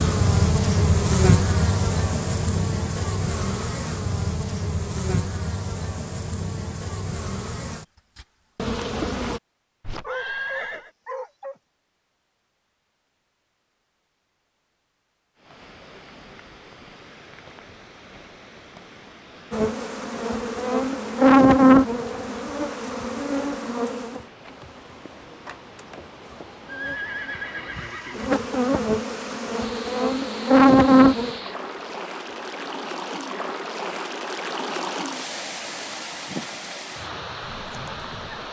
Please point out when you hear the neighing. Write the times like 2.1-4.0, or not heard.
9.8-10.9, 26.6-28.4.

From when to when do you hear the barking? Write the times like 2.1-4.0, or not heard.
10.0-11.6.